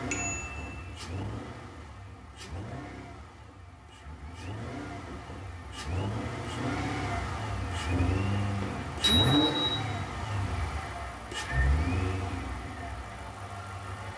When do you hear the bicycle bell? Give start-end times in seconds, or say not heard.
0.1-0.8, 8.6-9.8.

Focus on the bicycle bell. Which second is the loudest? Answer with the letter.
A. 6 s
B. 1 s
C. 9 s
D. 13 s
C.